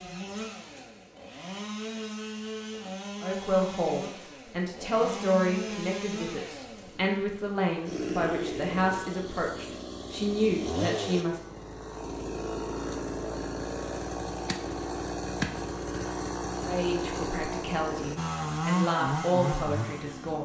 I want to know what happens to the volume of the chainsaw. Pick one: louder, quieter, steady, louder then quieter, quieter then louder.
louder.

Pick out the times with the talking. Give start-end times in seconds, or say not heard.
3.2-11.4, 16.6-20.3.